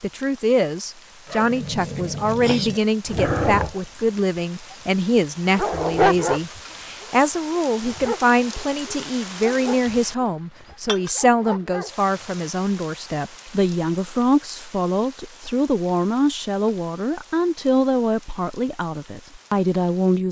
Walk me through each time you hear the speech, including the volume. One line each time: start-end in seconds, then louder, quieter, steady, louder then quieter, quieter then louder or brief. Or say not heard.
0.0-20.2 steady.